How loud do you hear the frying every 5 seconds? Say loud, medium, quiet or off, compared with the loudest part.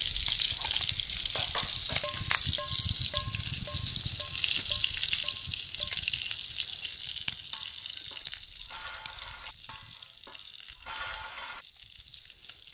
loud, medium, quiet.